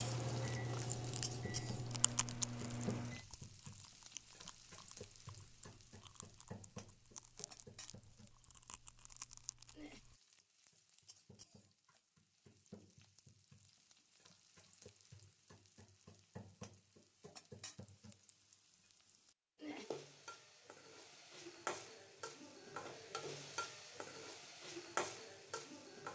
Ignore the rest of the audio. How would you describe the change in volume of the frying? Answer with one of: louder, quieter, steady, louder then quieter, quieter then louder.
quieter then louder.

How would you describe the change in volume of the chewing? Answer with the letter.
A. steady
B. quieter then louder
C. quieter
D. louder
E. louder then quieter
B.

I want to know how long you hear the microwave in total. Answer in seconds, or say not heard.
3 s.